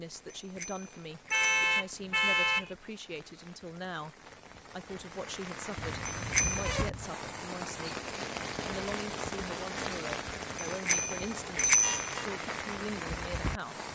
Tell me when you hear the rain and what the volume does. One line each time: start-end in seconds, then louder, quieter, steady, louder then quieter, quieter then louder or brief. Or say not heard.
0.0-13.9 louder.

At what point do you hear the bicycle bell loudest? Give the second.
12 s.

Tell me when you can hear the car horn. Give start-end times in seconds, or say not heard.
1.3-2.8, 5.8-7.1, 11.7-12.2.